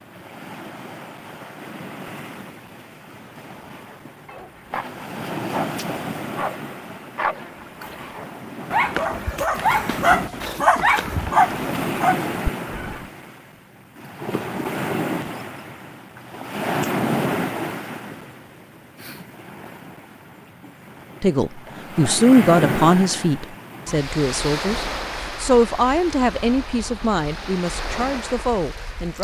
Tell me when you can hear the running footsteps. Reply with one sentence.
You can't hear the running footsteps here.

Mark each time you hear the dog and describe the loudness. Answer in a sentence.
The dog can be heard from 3.5 to 13.1 s, getting louder.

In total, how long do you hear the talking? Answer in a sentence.
You can hear the talking for 8 seconds altogether.